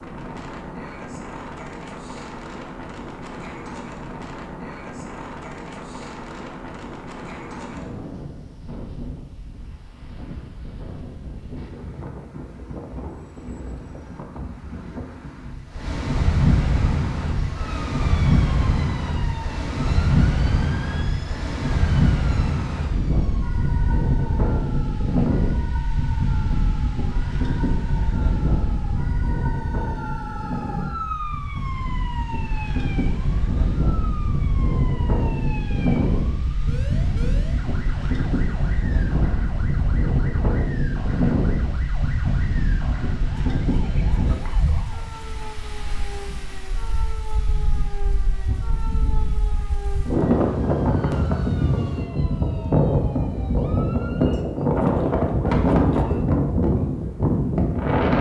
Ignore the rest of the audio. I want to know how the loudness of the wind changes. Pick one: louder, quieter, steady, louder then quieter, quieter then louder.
louder.